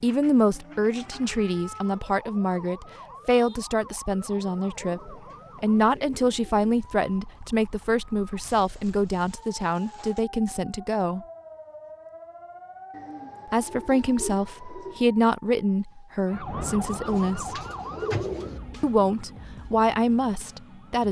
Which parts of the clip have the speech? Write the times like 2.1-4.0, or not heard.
0.0-11.2, 13.5-17.6, 18.8-21.0.